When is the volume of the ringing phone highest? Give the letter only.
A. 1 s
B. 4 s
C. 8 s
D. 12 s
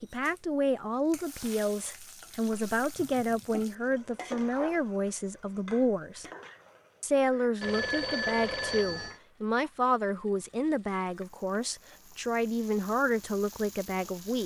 C.